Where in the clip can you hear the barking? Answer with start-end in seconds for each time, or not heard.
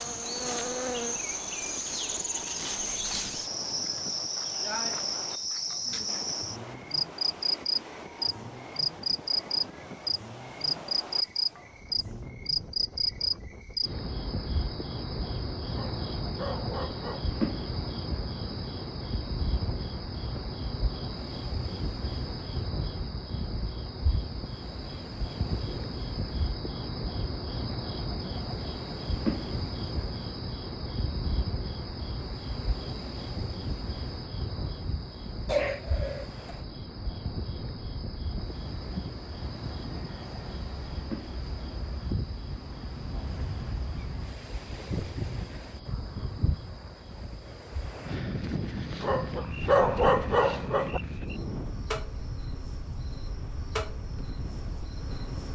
15.7-17.2, 49.0-51.0.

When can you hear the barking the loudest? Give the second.
50 s.